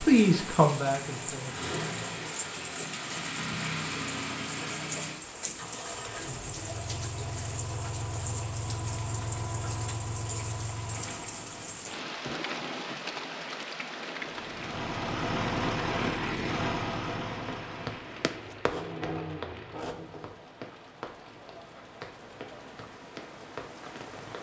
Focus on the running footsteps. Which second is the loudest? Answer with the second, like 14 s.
19 s.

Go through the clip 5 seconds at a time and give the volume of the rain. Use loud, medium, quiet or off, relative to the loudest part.
loud, loud, loud, medium, medium.